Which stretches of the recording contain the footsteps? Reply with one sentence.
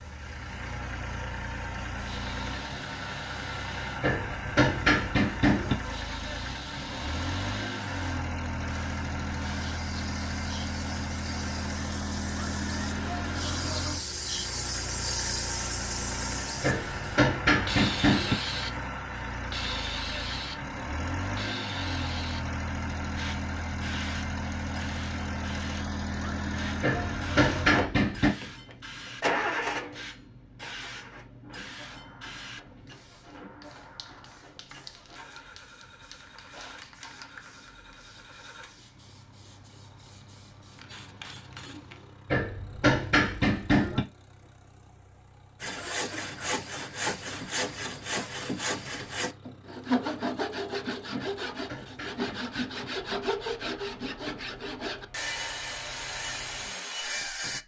You can't hear the footsteps here.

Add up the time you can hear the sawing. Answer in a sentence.
You can hear the sawing for 12 seconds altogether.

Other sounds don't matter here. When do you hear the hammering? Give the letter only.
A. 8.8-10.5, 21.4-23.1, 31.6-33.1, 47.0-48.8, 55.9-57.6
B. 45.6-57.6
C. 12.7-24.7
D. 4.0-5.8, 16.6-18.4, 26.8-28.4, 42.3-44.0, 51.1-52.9
D.